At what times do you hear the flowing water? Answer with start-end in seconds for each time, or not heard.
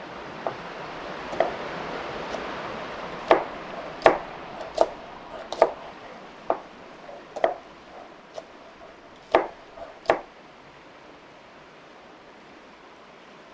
0.0-13.4.